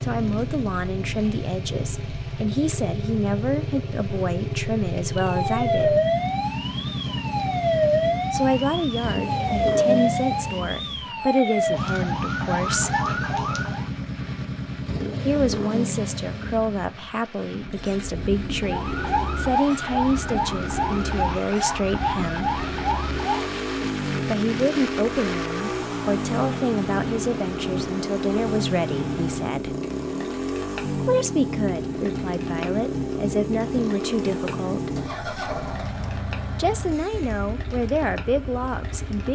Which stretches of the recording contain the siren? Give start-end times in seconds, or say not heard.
5.1-13.8, 18.6-23.6.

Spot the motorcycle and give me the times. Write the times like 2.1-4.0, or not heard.
0.0-39.3.